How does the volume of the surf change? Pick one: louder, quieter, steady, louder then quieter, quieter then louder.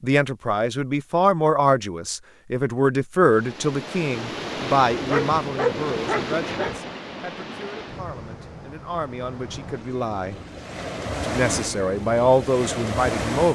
quieter then louder.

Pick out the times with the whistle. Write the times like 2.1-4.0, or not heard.
not heard.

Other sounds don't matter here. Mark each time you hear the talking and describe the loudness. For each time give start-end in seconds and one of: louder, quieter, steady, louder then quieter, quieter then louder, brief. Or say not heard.
0.0-10.3 quieter
11.2-13.5 brief.